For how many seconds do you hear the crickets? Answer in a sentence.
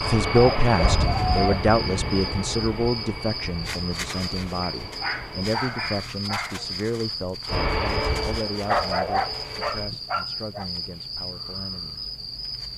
You can hear the crickets for 13 seconds altogether.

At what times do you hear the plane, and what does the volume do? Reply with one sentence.
The plane can be heard from 0.0 to 5.7 s, getting quieter; and briefly from 7.5 to 9.9 s.